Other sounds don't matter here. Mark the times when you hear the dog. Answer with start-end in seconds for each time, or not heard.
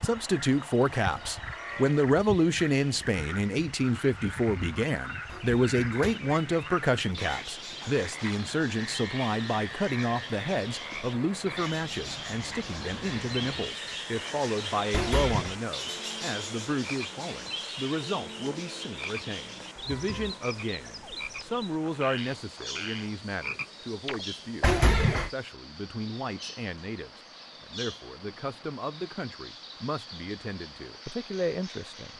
not heard.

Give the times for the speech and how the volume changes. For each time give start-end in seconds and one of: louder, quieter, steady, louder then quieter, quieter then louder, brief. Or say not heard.
0.0-32.1 quieter.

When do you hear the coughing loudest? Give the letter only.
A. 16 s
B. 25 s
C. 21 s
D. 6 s
B.